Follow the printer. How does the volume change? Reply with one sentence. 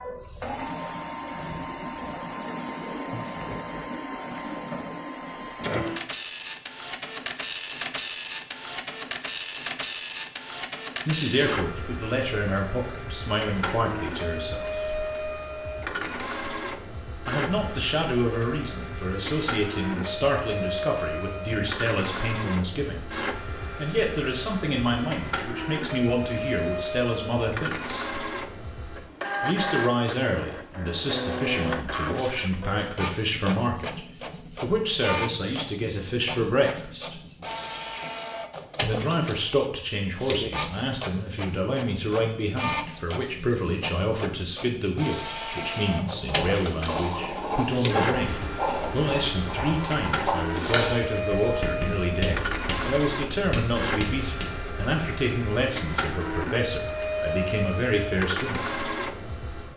The loudness of the printer stays about the same.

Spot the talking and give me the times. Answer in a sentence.
The talking can be heard from 11.1 to 15.0 s, from 17.2 to 28.1 s, from 29.4 to 37.2 s and from 38.8 to 58.6 s.